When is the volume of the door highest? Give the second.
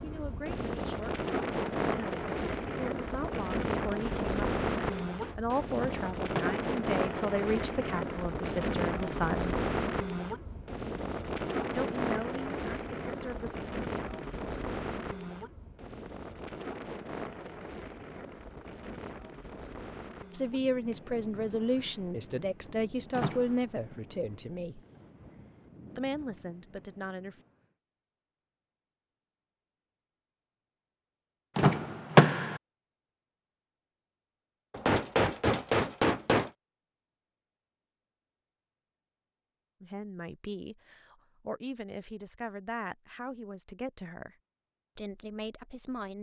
32 s.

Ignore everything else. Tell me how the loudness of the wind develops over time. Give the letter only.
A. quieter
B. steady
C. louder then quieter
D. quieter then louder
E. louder
A.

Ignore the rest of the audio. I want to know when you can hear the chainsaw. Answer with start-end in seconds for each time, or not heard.
not heard.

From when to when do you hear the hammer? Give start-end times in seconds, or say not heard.
4.0-5.7, 34.7-36.5.